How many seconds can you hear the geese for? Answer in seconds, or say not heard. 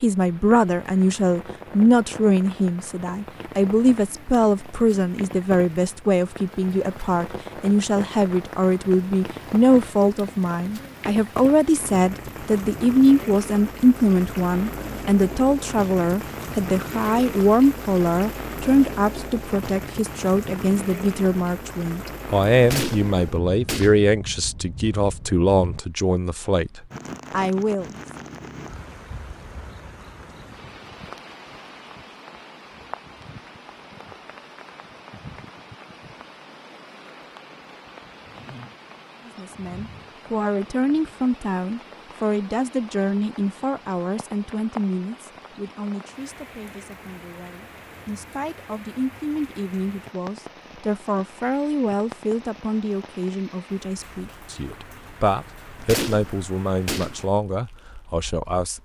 3 s.